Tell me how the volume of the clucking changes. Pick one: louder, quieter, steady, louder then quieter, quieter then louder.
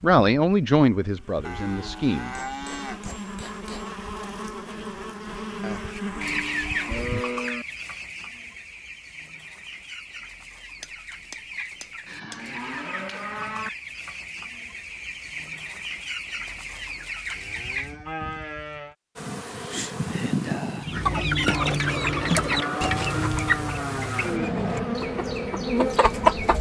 quieter then louder.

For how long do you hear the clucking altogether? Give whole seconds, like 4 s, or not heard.
18 s.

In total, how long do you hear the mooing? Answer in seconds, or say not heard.
10 s.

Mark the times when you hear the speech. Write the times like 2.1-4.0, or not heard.
0.0-2.3.